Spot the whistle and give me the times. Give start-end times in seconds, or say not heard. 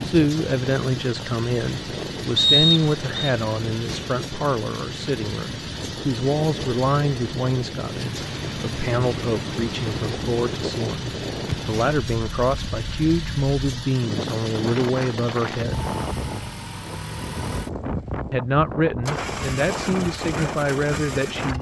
2.4-3.2.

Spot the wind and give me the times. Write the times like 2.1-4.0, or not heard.
0.0-21.5.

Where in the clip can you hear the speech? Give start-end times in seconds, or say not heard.
0.0-15.8, 18.3-21.5.